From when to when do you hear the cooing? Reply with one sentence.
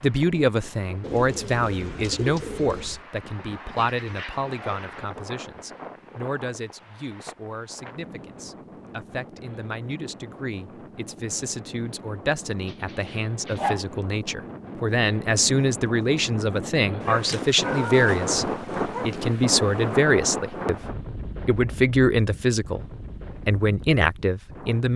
The cooing can be heard from 1.0 to 3.0 s.